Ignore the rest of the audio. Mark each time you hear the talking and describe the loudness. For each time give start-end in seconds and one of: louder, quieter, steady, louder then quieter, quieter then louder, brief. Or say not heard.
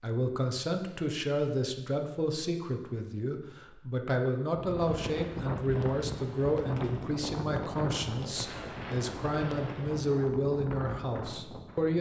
0.0-11.9 steady.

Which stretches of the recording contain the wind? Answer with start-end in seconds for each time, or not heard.
4.5-11.9.